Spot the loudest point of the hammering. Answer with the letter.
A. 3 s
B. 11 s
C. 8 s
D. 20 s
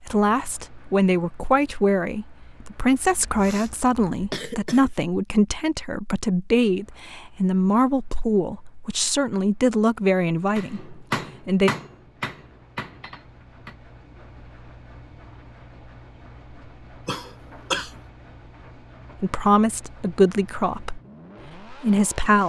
B.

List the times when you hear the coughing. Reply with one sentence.
You can hear the coughing from 3.2 to 4.9 s and from 17.1 to 17.9 s.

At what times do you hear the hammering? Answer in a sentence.
The hammering can be heard from 10.6 to 13.8 s.